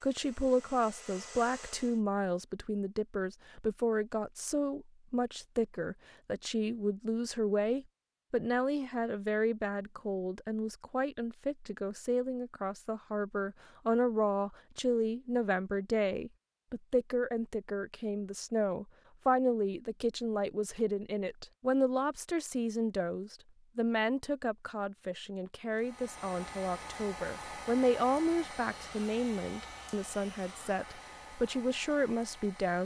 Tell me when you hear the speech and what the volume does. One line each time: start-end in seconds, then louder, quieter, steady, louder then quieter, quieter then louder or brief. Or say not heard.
0.0-32.7 steady.